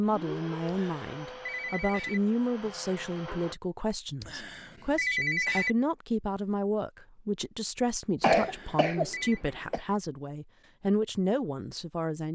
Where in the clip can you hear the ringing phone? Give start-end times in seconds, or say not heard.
0.7-2.2, 4.2-5.8, 8.3-9.4.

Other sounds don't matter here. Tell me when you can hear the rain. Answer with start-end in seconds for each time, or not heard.
not heard.